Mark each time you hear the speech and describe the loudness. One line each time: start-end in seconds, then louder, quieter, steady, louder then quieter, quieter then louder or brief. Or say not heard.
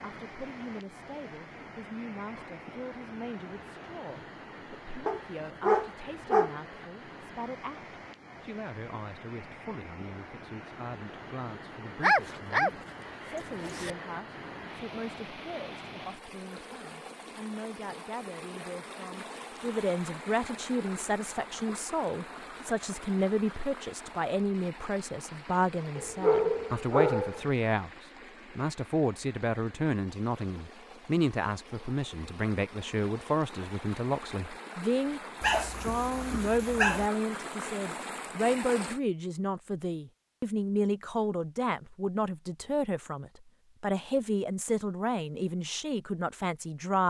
0.0-47.0 louder.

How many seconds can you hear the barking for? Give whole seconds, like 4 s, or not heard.
6 s.